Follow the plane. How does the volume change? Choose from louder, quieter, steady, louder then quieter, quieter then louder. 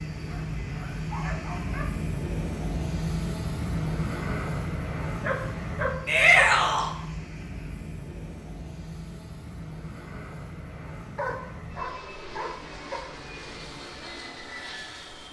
quieter.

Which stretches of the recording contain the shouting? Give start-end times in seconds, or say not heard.
6.0-6.9.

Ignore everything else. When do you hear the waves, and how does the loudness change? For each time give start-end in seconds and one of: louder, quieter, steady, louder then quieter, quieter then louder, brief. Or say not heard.
not heard.